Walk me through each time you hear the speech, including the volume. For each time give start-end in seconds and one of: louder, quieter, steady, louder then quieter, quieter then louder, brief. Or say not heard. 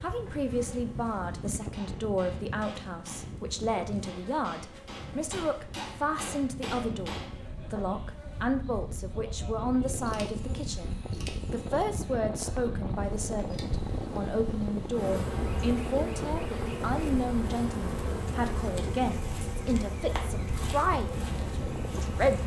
0.0-22.4 steady.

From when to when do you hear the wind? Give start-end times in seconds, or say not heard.
0.0-22.4.